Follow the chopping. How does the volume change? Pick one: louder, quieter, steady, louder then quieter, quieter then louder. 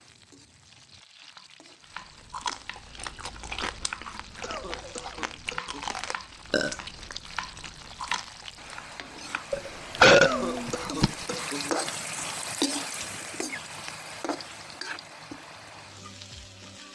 louder.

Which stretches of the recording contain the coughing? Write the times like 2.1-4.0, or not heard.
4.4-6.0, 10.2-11.8.